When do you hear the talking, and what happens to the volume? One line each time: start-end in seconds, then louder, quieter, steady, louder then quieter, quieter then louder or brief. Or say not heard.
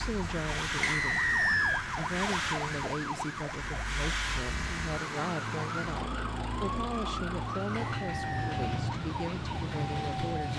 0.0-10.5 steady.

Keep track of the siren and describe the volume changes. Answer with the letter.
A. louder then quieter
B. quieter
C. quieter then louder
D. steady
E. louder
D.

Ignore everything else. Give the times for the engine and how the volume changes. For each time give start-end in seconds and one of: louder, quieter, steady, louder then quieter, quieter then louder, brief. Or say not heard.
0.0-10.5 steady.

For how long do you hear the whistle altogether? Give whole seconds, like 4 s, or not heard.
2 s.